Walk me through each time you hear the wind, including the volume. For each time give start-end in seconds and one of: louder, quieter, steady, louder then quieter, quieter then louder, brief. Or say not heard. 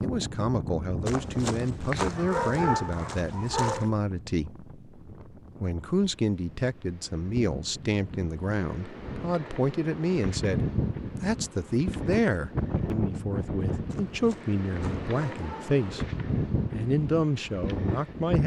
0.0-18.4 quieter then louder.